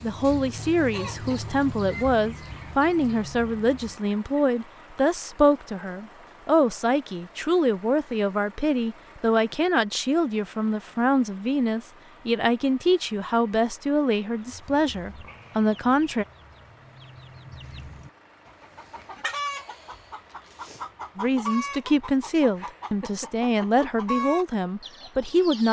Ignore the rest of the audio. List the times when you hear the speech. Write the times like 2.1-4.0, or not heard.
0.0-16.2, 21.1-25.6.